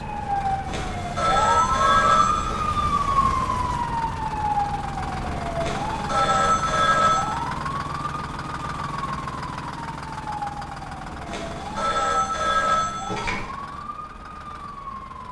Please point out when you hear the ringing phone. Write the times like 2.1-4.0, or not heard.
0.7-2.6, 5.6-7.4, 11.2-13.4.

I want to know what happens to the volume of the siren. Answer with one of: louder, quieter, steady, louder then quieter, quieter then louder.
quieter.